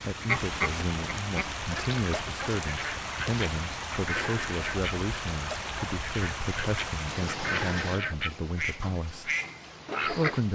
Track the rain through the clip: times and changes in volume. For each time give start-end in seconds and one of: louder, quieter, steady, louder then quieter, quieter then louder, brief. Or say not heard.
0.0-10.5 quieter.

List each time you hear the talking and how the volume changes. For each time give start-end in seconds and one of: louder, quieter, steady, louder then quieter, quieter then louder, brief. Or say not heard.
0.1-9.3 steady
10.0-10.5 brief.